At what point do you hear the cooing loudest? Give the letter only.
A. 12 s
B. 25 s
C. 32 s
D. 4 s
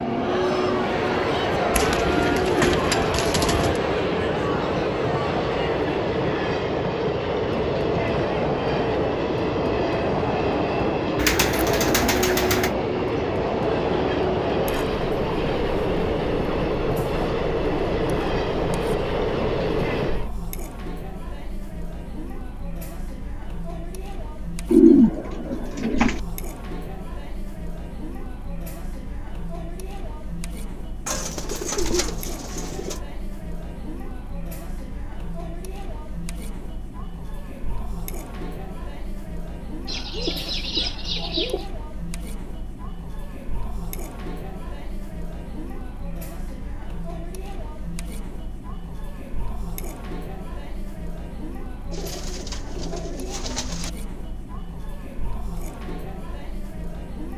B.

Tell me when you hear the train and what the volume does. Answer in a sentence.
The train can be heard from 0.0 to 20.3 s, at a steady volume.